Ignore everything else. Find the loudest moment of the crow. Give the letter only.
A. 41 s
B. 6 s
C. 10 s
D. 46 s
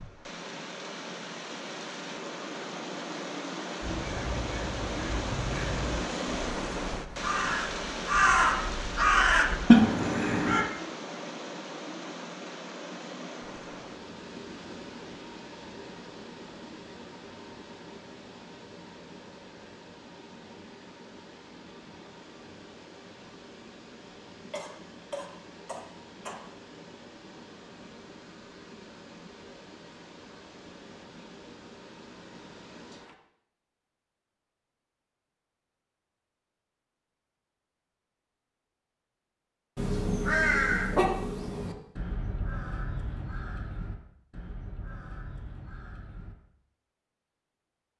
C.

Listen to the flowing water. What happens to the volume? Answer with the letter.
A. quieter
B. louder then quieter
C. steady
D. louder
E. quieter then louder
A.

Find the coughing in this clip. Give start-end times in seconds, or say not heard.
24.5-26.4.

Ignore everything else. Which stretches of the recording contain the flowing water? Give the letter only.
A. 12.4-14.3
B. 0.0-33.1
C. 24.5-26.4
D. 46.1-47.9
B.